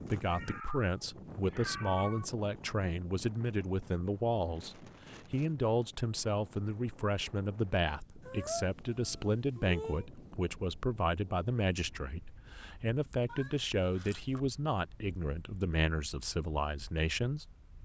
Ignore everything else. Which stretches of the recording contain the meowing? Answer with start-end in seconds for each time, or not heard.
0.2-2.2, 8.2-10.1, 13.2-14.4.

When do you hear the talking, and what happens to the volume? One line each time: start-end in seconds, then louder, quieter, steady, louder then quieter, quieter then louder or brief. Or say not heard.
0.1-17.4 steady.